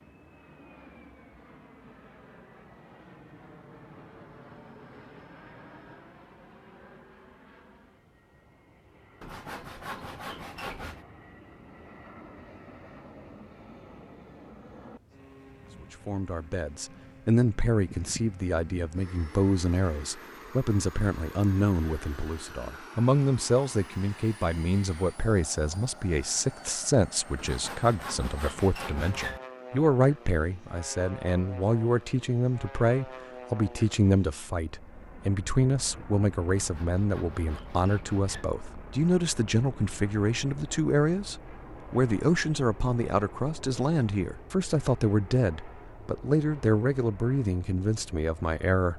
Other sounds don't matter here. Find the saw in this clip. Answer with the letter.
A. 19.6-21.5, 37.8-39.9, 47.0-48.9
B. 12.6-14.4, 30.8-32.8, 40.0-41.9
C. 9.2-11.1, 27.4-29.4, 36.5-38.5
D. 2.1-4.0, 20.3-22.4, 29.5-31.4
C.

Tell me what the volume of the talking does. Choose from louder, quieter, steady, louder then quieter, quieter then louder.
steady.